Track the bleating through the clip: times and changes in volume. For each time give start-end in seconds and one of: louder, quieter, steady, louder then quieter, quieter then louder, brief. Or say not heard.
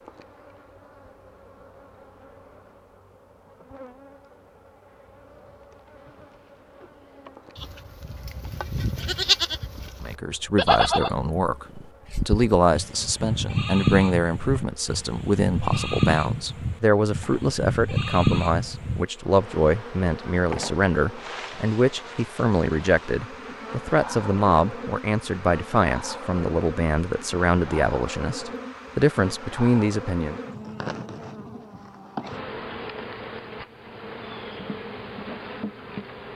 7.5-19.1 steady.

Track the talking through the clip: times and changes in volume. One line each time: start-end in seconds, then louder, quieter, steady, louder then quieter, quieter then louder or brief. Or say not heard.
10.0-30.4 steady.